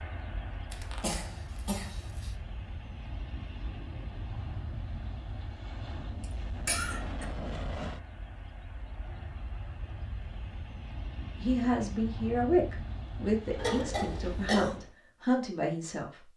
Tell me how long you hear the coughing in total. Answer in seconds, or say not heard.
4 s.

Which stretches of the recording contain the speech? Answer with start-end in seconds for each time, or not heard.
11.4-16.2.